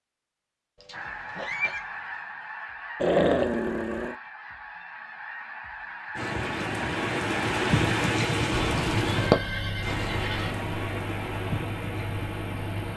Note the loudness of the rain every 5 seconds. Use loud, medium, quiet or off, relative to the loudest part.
off, loud, medium.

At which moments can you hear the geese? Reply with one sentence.
The geese can be heard from 0.9 to 8.2 s.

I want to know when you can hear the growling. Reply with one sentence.
You can hear the growling from 3.0 to 4.2 s.